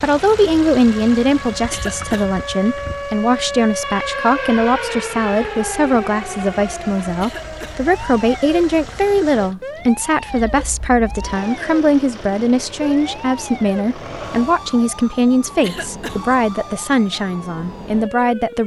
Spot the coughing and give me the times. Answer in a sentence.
The coughing can be heard from 1.7 to 2.2 s, from 7.2 to 7.8 s and from 15.6 to 16.2 s.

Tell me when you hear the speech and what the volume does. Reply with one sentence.
You can hear the speech from 0.0 to 18.6 s, at a steady volume.